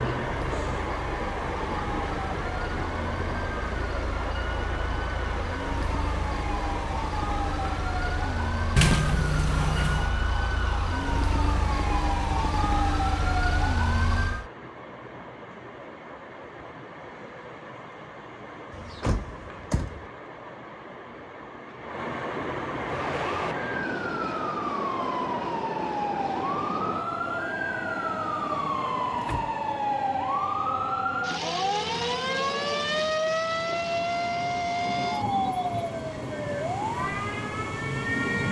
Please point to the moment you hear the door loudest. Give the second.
9 s.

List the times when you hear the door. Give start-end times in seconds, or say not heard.
8.8-10.1, 18.7-20.1, 28.5-29.6.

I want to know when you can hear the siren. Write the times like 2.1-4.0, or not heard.
0.0-14.5, 22.8-38.4.